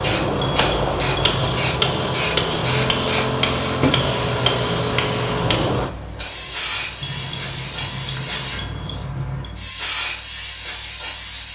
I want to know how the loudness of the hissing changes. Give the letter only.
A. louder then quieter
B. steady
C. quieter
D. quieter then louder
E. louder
C.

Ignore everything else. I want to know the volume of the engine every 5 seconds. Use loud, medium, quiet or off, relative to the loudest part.
loud, medium, off.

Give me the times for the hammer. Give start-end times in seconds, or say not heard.
0.5-5.8.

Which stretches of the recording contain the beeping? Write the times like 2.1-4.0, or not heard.
0.4-1.4, 7.0-9.5.